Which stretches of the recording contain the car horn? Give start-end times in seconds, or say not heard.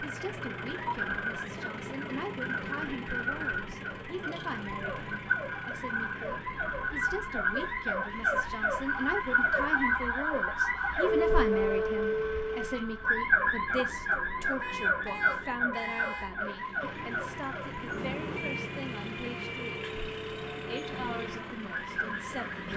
13.8-16.3.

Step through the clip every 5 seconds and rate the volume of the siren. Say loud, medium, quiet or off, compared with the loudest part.
medium, loud, loud, medium, medium.